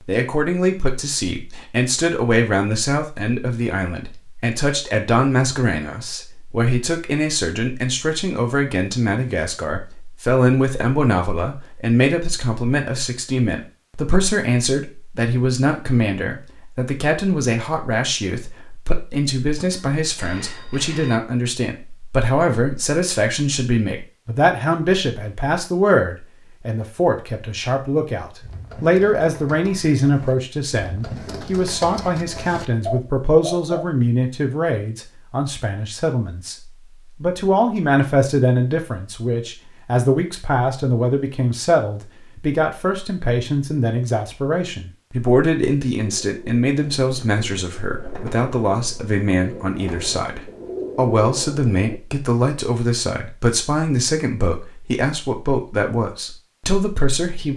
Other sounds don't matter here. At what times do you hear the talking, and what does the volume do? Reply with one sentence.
The talking can be heard from 0.1 to 57.5 s, at a steady volume.